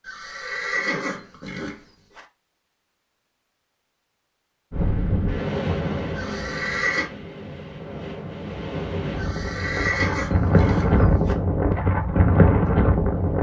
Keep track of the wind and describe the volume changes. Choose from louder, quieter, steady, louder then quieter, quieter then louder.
quieter then louder.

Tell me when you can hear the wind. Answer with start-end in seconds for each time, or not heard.
4.7-13.3.